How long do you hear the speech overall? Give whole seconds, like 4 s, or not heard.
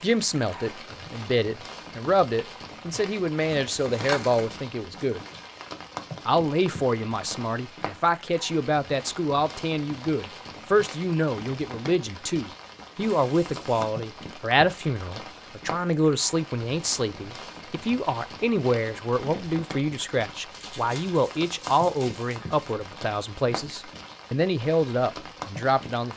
25 s.